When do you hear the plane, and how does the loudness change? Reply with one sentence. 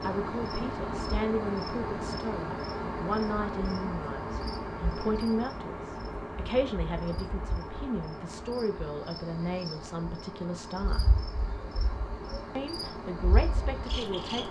The plane can be heard from 0.0 to 14.4 s, getting quieter.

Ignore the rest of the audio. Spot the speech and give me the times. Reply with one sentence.
The speech can be heard from 0.0 to 11.2 s and from 12.6 to 14.4 s.